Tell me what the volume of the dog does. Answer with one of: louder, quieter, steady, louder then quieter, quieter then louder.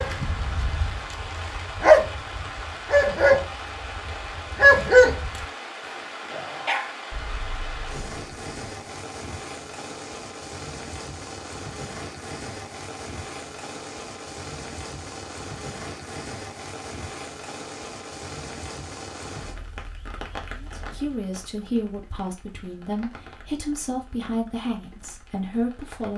louder then quieter.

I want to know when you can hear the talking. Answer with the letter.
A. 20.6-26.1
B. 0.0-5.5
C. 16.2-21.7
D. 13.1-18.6
A.